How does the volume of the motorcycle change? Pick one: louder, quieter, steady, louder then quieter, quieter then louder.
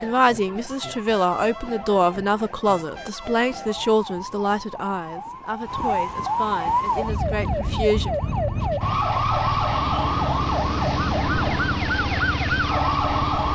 steady.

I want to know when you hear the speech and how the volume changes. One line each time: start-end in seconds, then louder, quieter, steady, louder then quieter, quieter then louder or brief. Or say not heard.
0.0-8.1 quieter.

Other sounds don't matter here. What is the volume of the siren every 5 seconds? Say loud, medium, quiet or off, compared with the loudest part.
quiet, loud, loud.